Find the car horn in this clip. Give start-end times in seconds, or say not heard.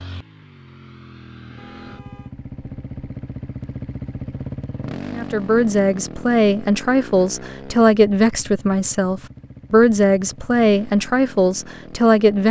1.6-2.4.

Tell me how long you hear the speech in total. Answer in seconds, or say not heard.
7 s.